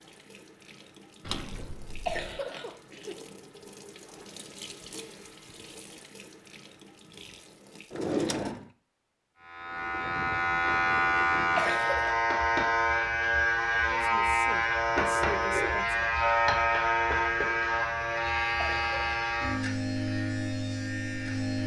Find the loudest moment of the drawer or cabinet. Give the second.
8 s.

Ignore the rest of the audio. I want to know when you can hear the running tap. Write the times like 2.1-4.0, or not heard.
0.0-8.1.